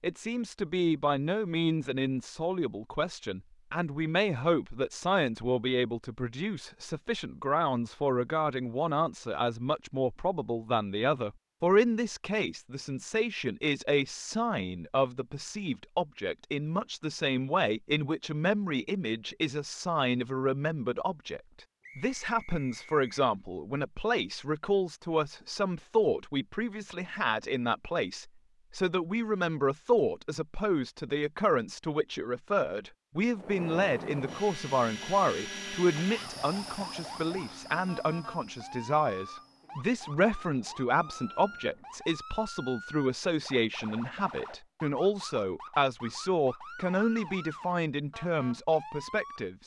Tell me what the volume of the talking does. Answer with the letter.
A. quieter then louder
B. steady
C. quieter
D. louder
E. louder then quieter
B.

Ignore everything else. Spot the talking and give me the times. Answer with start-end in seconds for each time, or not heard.
0.0-49.6.